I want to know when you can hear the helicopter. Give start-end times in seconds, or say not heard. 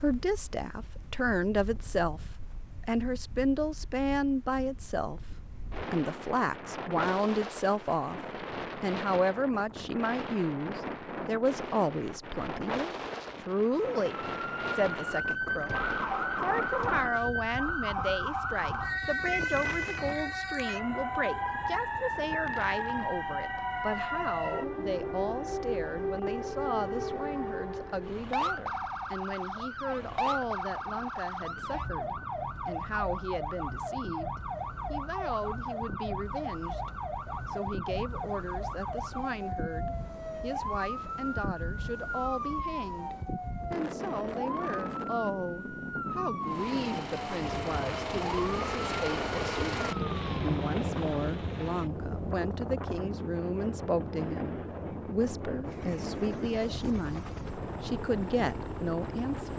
46.4-59.5.